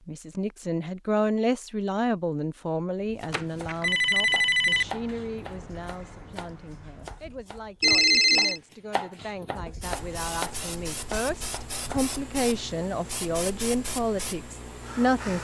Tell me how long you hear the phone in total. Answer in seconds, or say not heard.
2 s.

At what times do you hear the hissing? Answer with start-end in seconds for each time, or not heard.
9.8-15.4.